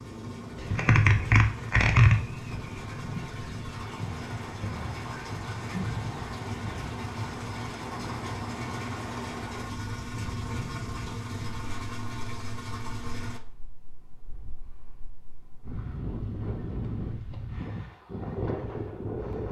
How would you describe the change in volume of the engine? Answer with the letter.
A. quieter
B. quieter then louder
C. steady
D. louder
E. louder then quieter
D.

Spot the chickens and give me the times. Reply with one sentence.
The chickens can be heard from 0.6 to 7.7 s.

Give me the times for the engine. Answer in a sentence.
The engine can be heard from 0.0 to 13.4 s.